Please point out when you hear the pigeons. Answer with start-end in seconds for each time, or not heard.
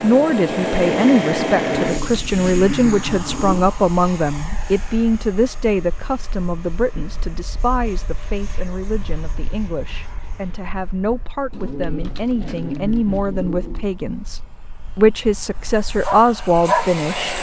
1.5-3.7, 11.5-13.8.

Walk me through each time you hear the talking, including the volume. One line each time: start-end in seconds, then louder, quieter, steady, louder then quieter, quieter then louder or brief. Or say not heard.
0.0-17.3 quieter then louder.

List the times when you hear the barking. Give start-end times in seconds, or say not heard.
16.0-17.3.